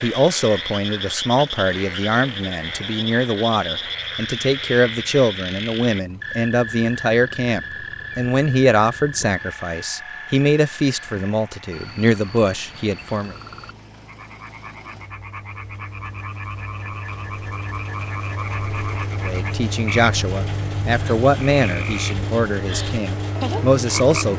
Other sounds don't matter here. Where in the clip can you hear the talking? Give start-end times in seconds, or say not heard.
0.0-13.3, 19.2-24.3.